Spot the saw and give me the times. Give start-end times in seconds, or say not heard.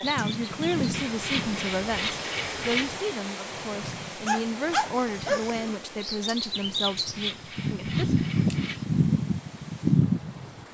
0.9-3.0, 6.8-8.8.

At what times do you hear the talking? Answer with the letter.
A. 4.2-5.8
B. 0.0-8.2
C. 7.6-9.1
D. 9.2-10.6
B.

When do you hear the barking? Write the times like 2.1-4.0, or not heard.
4.2-5.8.